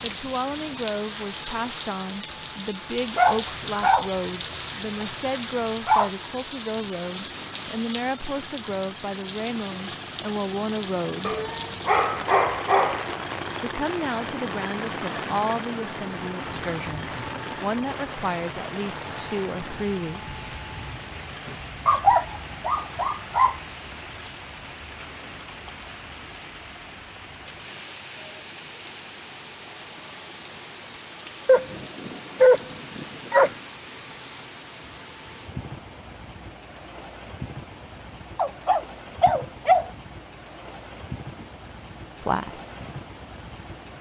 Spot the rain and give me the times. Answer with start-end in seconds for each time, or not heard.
0.0-43.9.